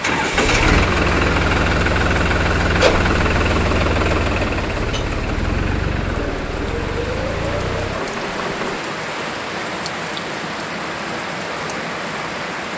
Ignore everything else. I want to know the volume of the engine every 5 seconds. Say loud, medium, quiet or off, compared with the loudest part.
loud, medium, off.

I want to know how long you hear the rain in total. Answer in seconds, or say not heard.
13 s.